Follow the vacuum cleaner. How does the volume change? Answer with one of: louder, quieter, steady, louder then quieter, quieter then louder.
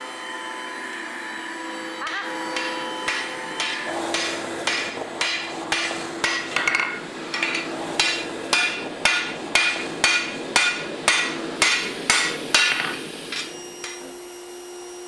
quieter.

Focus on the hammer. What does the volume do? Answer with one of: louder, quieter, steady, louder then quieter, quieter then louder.
louder.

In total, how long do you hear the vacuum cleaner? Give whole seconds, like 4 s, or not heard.
15 s.